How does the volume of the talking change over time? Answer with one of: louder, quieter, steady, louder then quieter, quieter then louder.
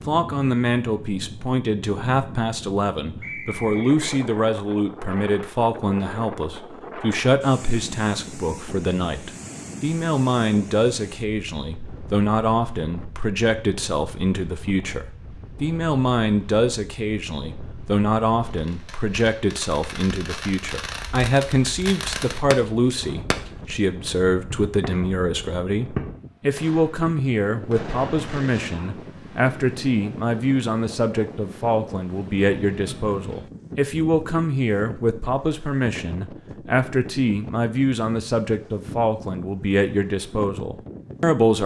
steady.